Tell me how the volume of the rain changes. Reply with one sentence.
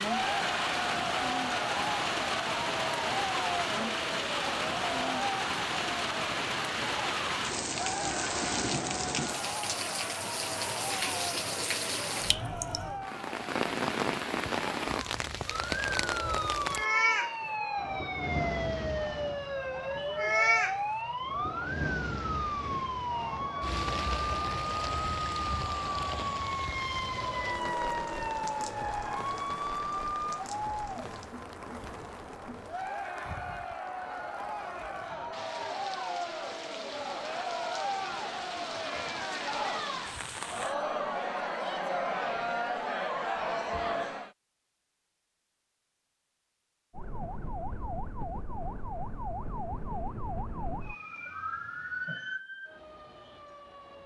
The volume of the rain goes down.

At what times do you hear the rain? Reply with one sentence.
The rain can be heard from 0.0 to 40.8 s.